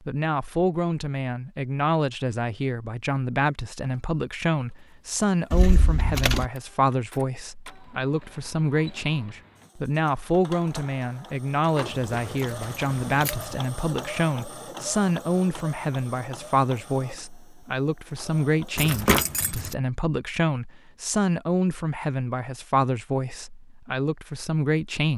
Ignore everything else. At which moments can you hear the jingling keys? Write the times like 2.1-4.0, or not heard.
5.5-6.5, 11.8-13.6, 18.8-19.8.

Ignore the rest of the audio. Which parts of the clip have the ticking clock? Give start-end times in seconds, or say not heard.
not heard.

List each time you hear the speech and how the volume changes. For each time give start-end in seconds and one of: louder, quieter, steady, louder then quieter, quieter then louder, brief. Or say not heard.
0.0-25.1 steady.